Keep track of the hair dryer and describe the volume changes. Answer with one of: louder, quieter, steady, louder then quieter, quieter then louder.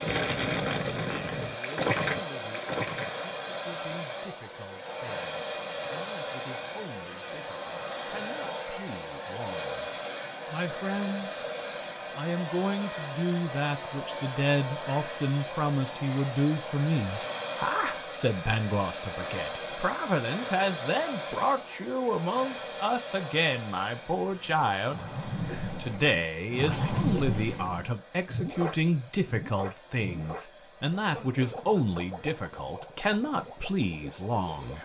quieter.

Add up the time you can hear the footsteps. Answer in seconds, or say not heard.
not heard.